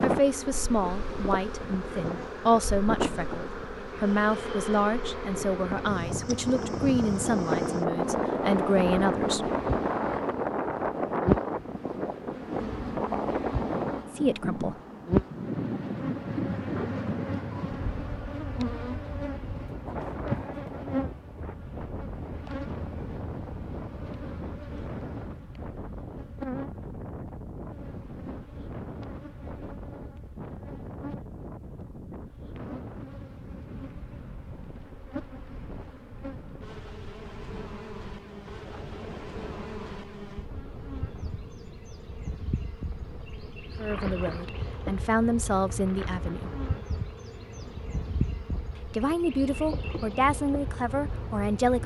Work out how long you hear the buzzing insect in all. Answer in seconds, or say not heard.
52 s.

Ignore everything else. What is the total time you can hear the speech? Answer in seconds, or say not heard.
16 s.